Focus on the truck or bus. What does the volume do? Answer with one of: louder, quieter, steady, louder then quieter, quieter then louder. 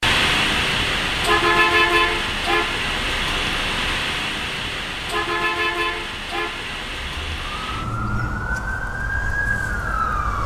quieter.